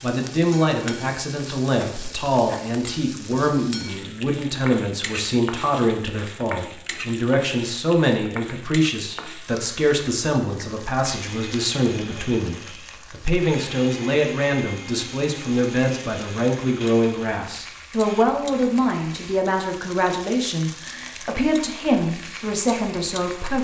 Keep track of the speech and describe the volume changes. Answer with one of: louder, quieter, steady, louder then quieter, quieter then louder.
steady.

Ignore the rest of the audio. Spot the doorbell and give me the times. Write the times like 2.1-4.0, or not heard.
not heard.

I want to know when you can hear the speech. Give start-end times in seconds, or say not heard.
0.0-23.6.